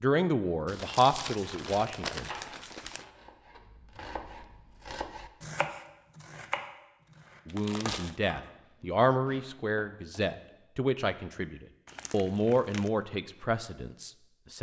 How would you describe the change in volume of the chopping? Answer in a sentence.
The loudness of the chopping goes up, then down.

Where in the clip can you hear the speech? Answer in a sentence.
The speech can be heard from 0.0 to 2.3 s and from 7.5 to 14.5 s.